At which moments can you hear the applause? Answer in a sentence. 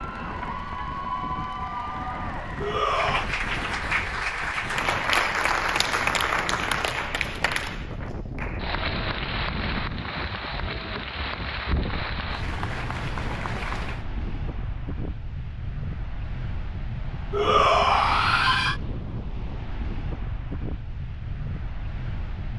You can hear the applause from 0.0 to 14.1 s.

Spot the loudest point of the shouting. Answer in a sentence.
The loudest moment of the shouting is at 18 seconds.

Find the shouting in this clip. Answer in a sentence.
You can hear the shouting from 2.6 to 3.3 s and from 17.3 to 18.8 s.